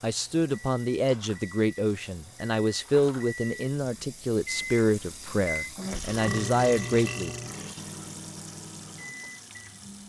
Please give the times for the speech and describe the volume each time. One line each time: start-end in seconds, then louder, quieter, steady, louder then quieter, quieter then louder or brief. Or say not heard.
0.0-7.3 steady.